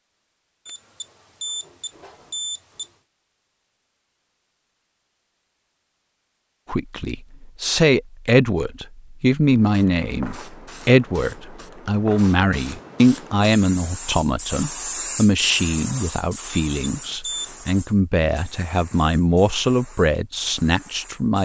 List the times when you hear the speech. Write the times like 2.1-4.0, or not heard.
6.7-21.4.